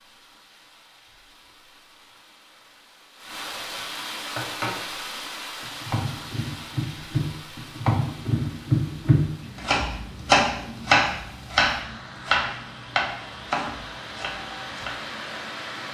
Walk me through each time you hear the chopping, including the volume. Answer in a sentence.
The chopping can be heard briefly from 4.3 to 4.8 s; and from 5.6 to 14.9 s, getting louder then quieter.